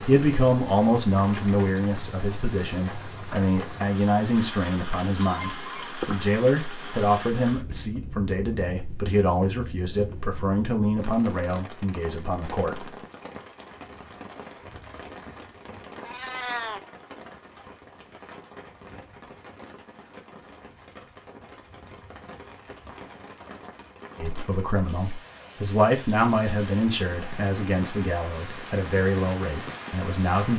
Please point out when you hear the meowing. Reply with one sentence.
You can hear the meowing from 5.2 to 6.3 s and from 16.0 to 16.8 s.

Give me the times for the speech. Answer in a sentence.
The speech can be heard from 0.0 to 12.8 s and from 24.1 to 30.5 s.